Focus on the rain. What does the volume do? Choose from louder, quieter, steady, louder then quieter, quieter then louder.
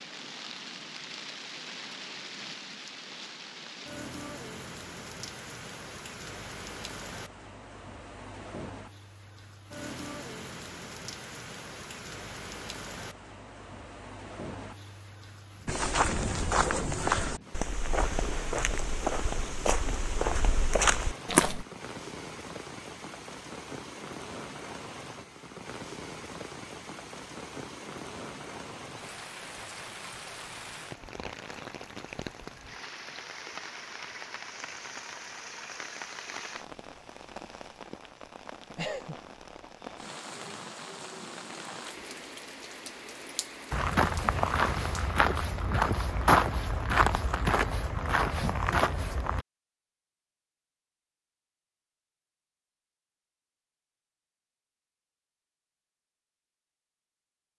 steady.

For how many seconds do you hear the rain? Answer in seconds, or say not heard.
45 s.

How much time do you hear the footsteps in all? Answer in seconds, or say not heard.
12 s.